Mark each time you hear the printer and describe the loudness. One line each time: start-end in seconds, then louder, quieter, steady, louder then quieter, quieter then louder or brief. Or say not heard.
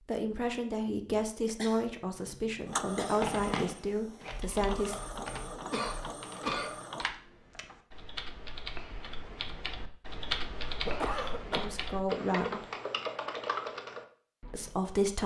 2.6-7.1 quieter then louder.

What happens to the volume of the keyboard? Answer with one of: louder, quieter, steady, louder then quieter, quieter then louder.
louder.